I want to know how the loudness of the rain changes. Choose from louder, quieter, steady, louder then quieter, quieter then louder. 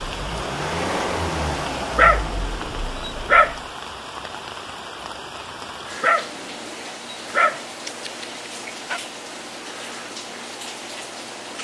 steady.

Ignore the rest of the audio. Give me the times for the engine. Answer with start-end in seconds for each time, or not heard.
0.0-3.5.